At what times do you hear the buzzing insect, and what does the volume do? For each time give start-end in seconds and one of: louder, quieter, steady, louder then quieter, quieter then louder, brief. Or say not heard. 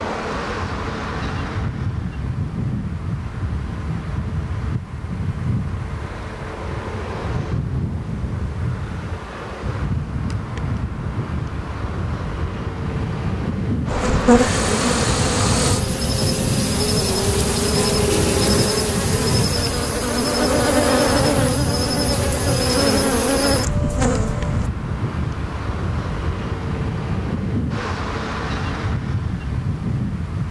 13.8-24.7 steady.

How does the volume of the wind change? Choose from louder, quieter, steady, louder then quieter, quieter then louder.
steady.